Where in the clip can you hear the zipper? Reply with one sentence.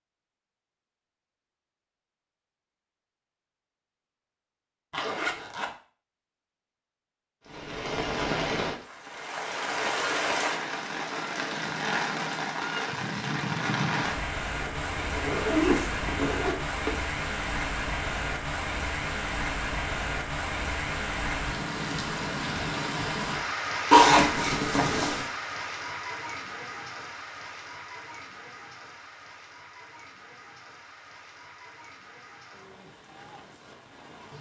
The zipper can be heard from 4.9 to 5.7 s, from 14.5 to 16.9 s and from 23.9 to 25.2 s.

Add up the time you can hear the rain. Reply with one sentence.
The rain can be heard for 27 seconds in total.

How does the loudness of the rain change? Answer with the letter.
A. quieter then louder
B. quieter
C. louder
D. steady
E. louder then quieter
B.